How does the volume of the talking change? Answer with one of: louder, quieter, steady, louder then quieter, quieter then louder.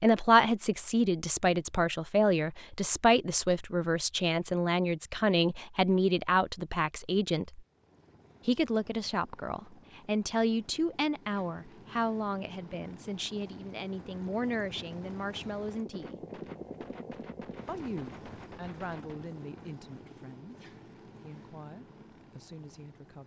quieter.